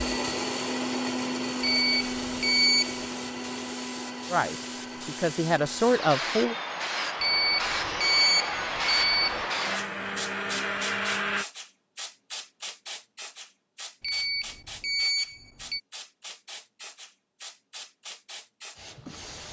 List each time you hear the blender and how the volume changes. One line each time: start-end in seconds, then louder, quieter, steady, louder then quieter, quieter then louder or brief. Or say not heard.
0.0-11.4 quieter then louder.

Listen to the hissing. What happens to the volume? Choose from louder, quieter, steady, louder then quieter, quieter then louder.
louder then quieter.